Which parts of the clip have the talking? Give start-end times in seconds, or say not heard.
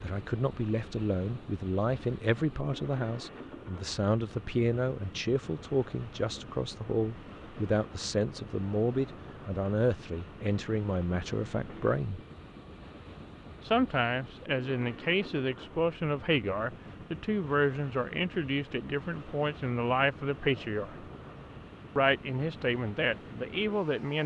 0.0-12.2, 13.7-21.1, 21.9-24.2.